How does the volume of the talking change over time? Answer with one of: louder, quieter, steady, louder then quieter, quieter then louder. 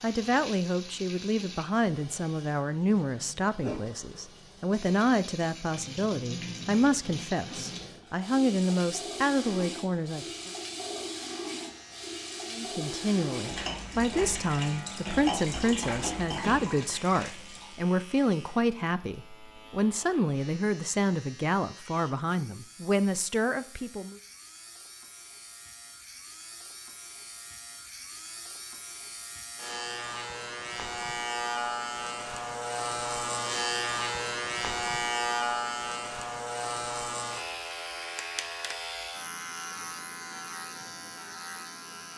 steady.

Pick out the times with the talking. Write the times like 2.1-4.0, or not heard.
0.0-10.5, 12.5-24.1.